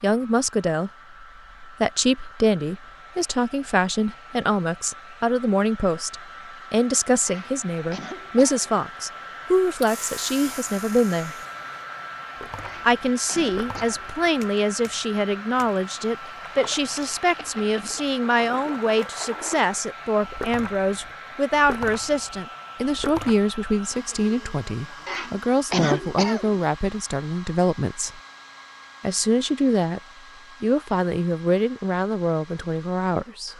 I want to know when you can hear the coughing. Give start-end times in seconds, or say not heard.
7.2-8.7, 12.6-14.2, 25.1-26.6.